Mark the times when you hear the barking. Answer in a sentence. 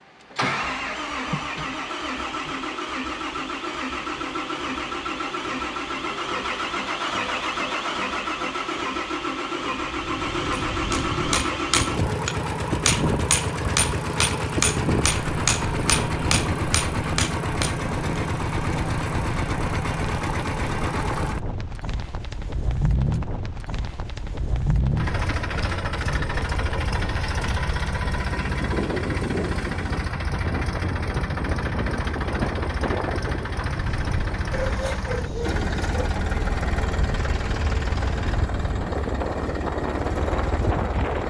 The barking can be heard from 34.5 to 36.1 s.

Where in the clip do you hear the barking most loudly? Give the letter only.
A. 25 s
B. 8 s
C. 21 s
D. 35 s
D.